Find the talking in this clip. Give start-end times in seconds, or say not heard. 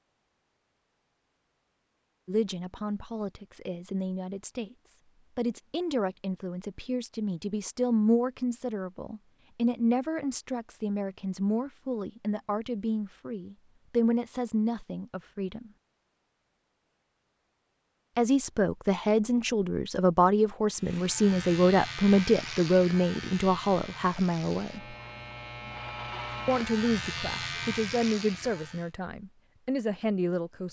2.2-15.7, 18.1-24.9, 26.4-30.6.